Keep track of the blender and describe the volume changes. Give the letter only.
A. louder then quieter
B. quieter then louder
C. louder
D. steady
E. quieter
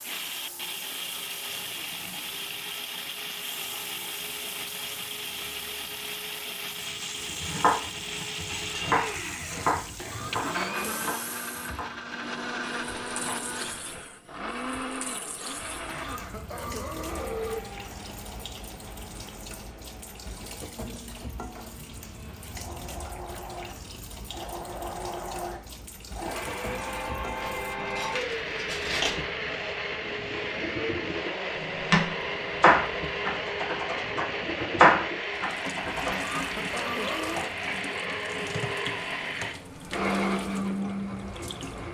B.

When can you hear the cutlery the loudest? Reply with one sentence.
The loudest moment of the cutlery is at 29 seconds.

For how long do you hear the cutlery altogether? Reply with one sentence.
You can hear the cutlery for 2 seconds altogether.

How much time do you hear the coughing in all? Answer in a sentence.
The coughing can be heard for 5 seconds in total.